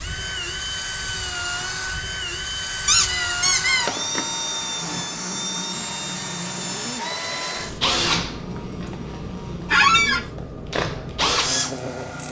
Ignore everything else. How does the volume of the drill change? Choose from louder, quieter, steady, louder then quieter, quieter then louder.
steady.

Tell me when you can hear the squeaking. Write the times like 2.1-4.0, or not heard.
2.9-4.2, 9.7-10.2.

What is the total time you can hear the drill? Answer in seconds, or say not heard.
12 s.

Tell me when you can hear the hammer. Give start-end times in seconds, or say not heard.
not heard.